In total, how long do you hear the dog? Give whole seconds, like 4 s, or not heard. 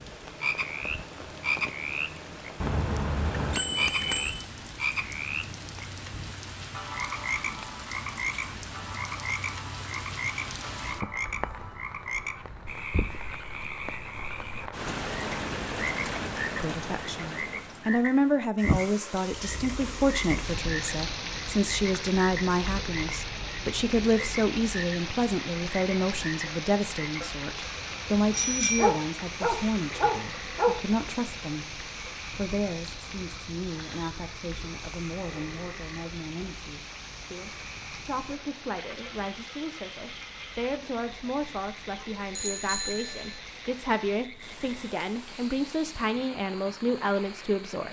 2 s.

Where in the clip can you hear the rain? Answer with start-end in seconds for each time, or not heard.
0.0-47.8.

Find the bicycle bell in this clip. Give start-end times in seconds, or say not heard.
2.6-4.5, 28.3-28.9, 42.4-43.4.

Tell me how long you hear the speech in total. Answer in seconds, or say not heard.
31 s.